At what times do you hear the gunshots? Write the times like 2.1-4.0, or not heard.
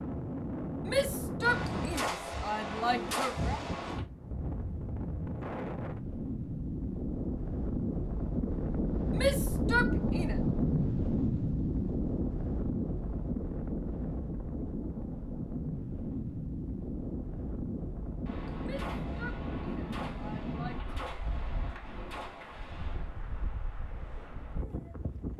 1.4-4.0, 18.2-23.1.